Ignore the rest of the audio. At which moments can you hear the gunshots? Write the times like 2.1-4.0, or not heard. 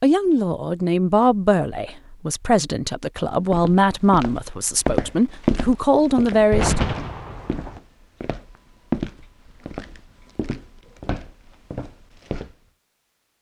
6.5-7.8.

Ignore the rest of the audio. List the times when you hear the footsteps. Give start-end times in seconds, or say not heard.
3.5-12.6.